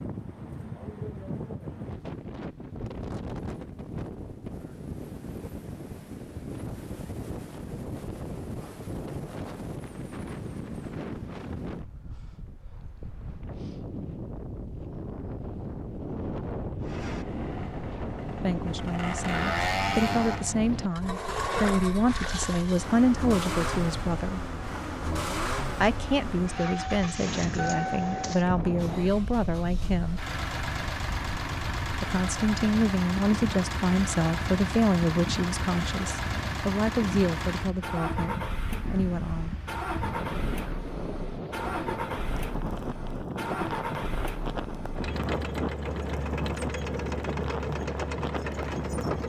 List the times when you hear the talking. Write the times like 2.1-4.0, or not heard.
18.4-24.4, 25.8-30.2, 32.0-39.5.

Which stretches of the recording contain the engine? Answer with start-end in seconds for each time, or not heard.
16.9-49.2.